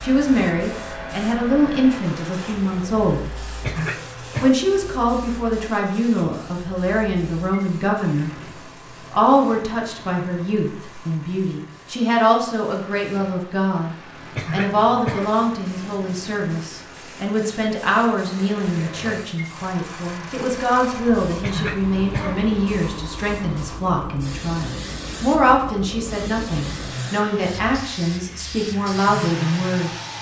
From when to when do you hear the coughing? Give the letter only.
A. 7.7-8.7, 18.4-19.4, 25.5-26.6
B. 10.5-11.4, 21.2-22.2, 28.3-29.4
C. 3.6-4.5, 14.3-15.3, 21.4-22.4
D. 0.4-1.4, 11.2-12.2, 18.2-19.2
C.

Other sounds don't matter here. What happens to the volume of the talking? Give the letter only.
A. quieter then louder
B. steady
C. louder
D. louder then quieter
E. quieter
B.